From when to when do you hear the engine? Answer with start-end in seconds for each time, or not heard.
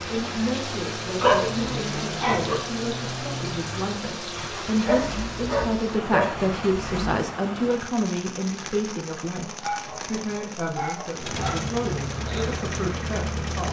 0.0-7.2, 11.2-13.6.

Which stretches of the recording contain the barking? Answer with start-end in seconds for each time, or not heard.
1.2-2.5, 4.8-6.3, 9.3-11.6.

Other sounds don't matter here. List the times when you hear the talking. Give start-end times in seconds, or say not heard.
0.1-13.6.